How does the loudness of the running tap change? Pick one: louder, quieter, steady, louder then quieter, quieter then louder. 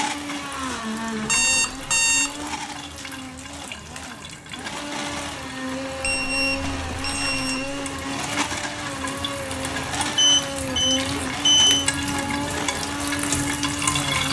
louder.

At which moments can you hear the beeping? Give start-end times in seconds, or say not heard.
1.2-2.3, 6.0-7.8, 10.2-11.8.